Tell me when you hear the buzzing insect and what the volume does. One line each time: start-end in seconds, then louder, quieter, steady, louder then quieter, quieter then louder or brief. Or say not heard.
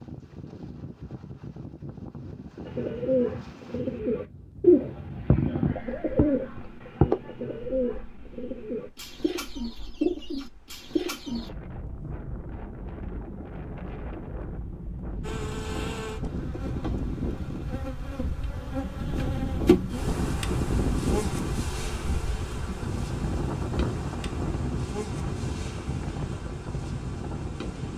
15.2-27.9 louder then quieter.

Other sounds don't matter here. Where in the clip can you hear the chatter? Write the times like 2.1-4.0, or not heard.
not heard.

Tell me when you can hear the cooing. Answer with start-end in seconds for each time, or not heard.
2.6-11.5.